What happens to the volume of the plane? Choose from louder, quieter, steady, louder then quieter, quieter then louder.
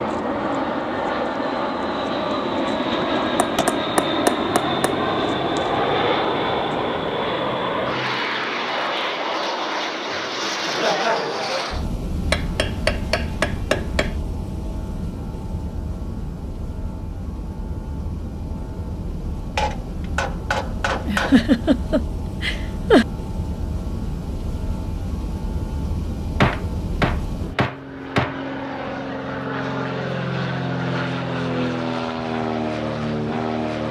quieter then louder.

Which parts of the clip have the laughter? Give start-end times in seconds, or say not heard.
10.6-11.8, 21.1-23.1.